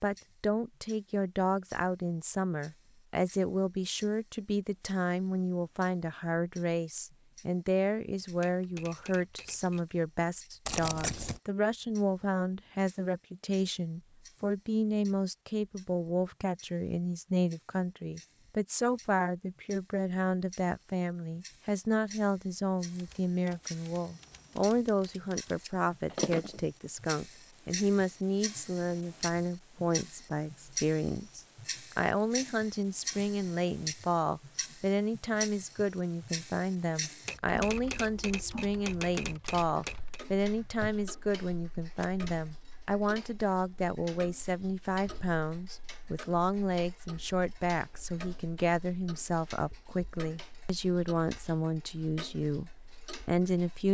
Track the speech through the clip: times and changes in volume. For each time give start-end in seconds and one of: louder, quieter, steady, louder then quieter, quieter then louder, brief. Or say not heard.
0.0-53.8 steady.